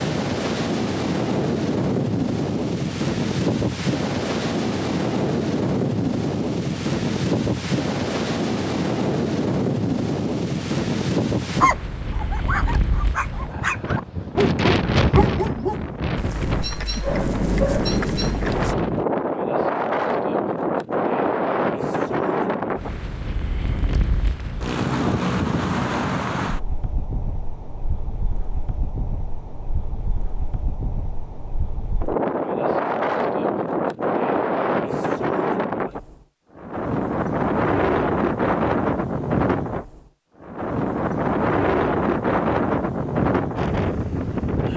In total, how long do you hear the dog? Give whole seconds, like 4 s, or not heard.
7 s.